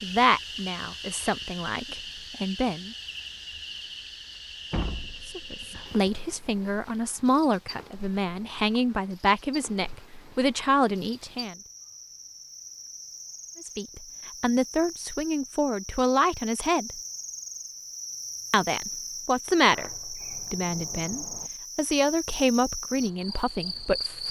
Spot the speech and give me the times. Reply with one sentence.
The speech can be heard from 0.0 to 3.0 s, from 5.2 to 11.6 s, from 13.6 to 16.9 s and from 18.5 to 24.2 s.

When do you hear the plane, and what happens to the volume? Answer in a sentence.
You can't hear the plane here.